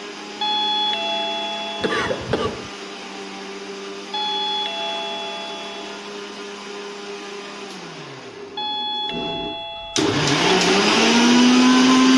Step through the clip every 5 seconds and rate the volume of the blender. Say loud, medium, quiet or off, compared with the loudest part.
quiet, quiet, loud.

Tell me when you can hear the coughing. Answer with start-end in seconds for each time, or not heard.
1.8-2.7.